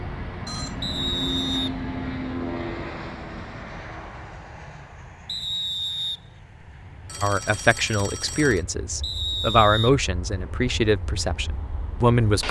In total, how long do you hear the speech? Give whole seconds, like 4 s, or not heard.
5 s.